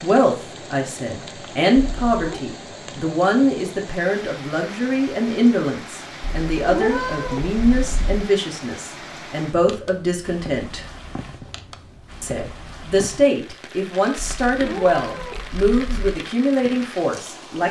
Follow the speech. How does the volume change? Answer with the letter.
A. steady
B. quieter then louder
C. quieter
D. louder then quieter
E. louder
A.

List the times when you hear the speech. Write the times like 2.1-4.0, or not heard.
0.0-10.8, 12.2-17.6.